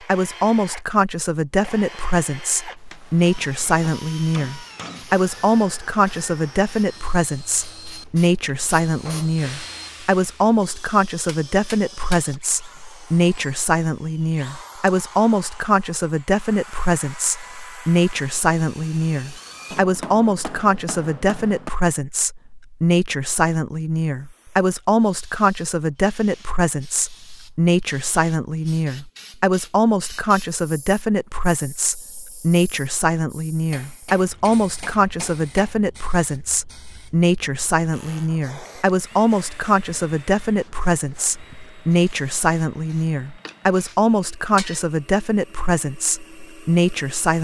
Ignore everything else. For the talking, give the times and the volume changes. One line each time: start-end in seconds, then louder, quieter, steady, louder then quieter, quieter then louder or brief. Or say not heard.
0.1-47.4 steady.